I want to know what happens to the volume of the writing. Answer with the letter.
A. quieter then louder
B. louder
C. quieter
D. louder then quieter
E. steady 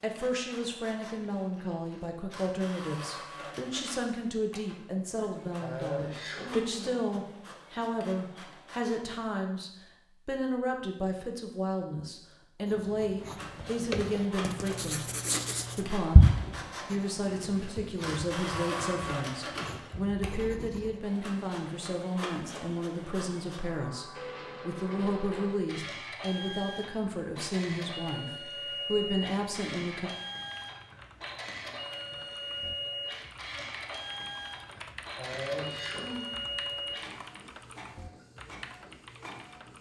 D.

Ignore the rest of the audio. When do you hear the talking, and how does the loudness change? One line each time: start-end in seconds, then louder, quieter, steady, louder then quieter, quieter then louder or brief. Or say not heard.
0.0-15.0 steady
15.8-30.1 steady.